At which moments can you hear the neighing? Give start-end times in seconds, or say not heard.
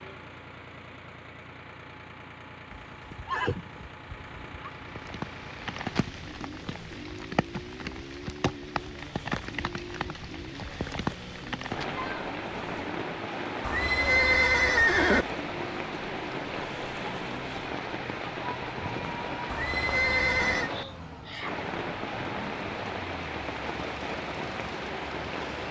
2.7-4.7, 13.6-15.2, 19.5-20.7.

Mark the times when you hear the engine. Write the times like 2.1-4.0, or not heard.
0.0-25.6.